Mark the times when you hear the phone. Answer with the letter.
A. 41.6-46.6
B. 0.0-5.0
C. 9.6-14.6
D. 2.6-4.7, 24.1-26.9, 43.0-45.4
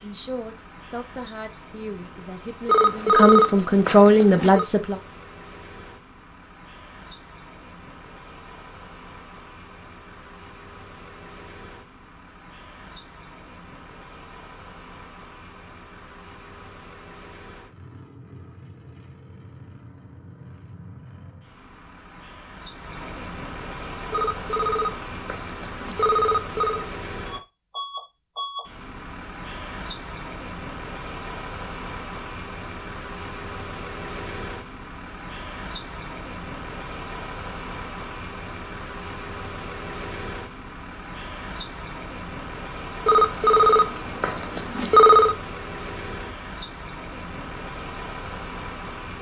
D.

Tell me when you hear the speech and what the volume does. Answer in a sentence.
The speech can be heard from 0.0 to 5.0 s, getting louder.